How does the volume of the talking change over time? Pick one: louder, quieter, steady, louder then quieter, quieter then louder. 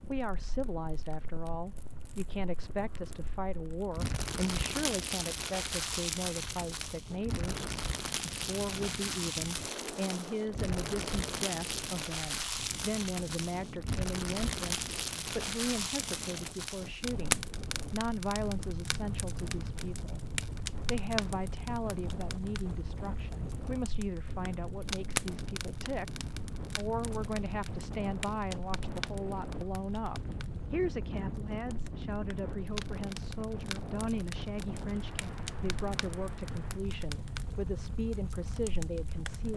steady.